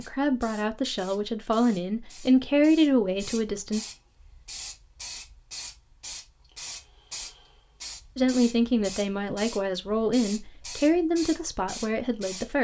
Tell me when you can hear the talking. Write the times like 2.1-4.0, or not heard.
0.0-3.8, 8.2-12.6.